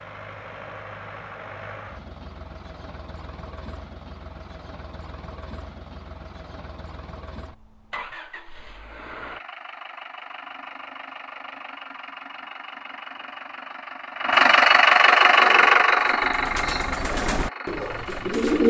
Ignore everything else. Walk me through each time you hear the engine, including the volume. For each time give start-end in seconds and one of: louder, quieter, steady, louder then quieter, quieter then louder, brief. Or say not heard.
0.0-18.6 louder.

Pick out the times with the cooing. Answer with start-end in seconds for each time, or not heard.
15.3-18.6.